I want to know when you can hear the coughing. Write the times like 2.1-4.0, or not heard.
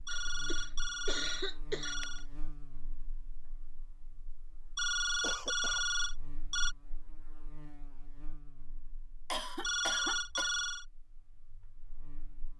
0.1-1.9, 4.8-5.8, 9.3-10.5.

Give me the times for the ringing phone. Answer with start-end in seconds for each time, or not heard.
0.1-2.2, 4.8-6.8, 9.6-10.8.